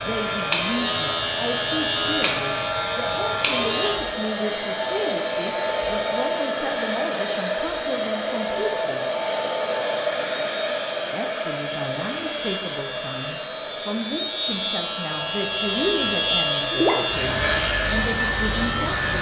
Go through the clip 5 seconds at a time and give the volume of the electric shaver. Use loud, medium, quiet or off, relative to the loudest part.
loud, medium, medium, loud.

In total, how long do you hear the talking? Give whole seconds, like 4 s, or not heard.
17 s.